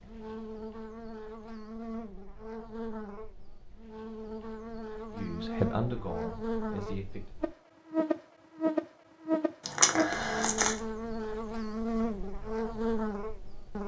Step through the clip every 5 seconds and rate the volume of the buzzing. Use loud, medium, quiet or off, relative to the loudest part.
medium, loud, loud.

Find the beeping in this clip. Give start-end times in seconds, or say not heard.
not heard.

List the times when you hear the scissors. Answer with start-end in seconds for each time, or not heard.
9.7-10.8.